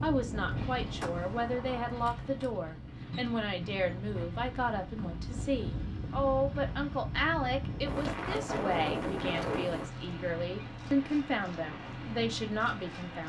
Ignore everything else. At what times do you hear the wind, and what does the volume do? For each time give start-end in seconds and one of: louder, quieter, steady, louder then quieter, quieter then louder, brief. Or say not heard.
0.0-9.9 quieter then louder.